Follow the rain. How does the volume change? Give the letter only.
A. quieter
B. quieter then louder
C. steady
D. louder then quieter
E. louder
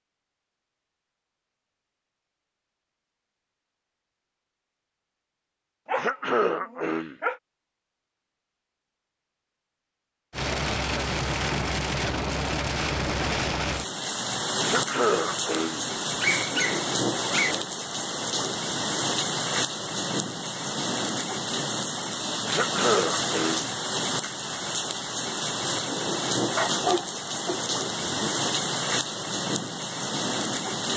C.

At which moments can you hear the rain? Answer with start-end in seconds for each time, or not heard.
10.3-30.9.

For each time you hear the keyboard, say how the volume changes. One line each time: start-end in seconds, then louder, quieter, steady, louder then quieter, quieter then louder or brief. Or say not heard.
not heard.